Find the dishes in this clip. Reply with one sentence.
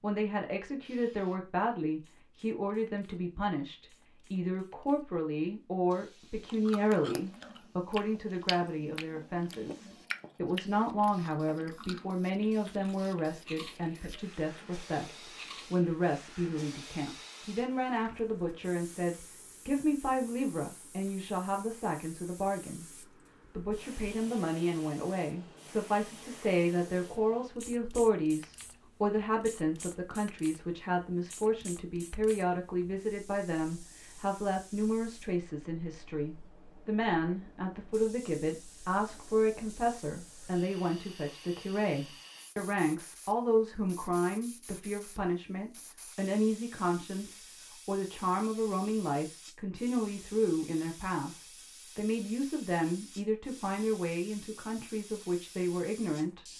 You can't hear the dishes here.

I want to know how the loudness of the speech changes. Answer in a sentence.
The volume of the speech stays about the same.